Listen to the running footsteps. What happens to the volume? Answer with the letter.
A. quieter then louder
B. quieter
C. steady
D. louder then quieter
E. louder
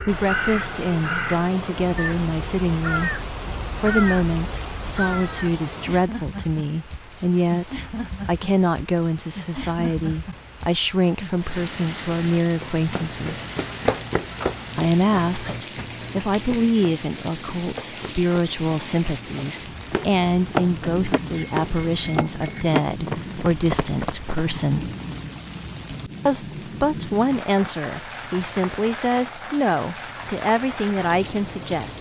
A.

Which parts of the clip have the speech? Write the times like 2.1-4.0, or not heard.
0.1-13.4, 14.8-24.9, 26.2-31.9.